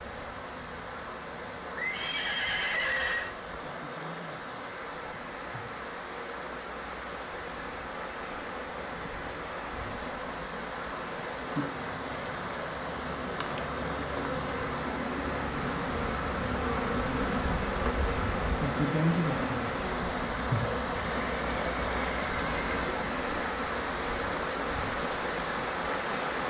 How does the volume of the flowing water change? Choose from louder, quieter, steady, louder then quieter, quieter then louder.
louder.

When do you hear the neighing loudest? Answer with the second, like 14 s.
3 s.